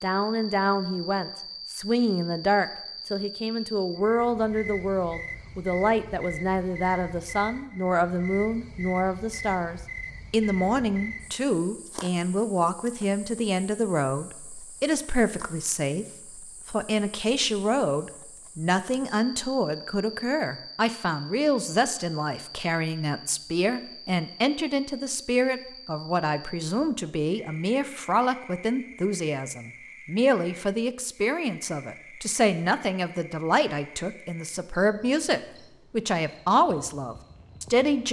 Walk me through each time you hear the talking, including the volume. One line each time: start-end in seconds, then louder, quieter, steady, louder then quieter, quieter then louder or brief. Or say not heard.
0.0-38.0 steady.